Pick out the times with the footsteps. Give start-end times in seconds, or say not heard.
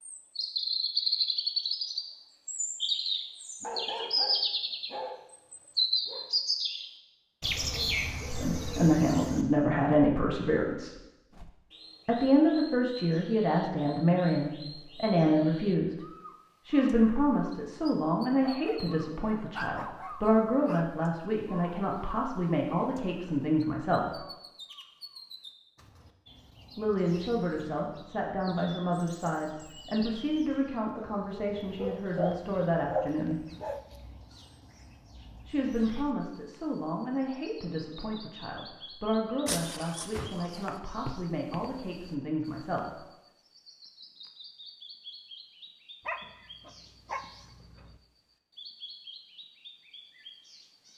39.5-41.9.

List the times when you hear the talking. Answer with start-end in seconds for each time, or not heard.
8.3-10.9, 12.1-15.9, 16.6-24.2, 26.8-33.5, 35.5-43.0.